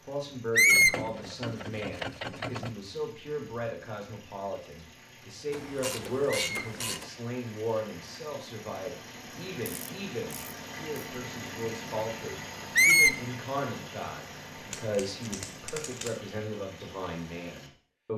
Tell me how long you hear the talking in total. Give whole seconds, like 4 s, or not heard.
18 s.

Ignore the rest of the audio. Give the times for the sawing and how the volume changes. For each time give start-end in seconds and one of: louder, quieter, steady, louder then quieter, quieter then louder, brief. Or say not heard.
not heard.